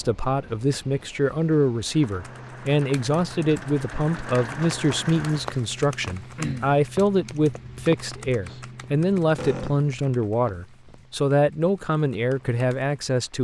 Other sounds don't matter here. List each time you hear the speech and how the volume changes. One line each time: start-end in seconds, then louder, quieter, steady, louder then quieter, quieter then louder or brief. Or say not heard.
0.0-13.3 steady.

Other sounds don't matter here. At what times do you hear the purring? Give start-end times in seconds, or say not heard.
not heard.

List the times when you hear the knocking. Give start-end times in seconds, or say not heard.
not heard.